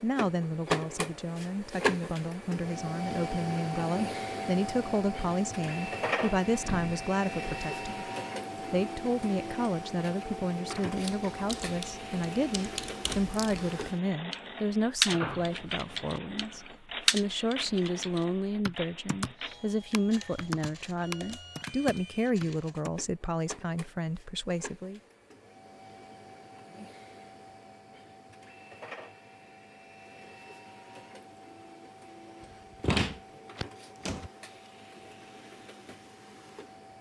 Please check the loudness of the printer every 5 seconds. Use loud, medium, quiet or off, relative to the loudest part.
loud, loud, medium, medium, quiet, quiet, quiet, quiet.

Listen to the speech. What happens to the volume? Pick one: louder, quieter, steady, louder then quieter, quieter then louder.
steady.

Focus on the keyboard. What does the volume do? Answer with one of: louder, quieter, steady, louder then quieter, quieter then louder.
louder then quieter.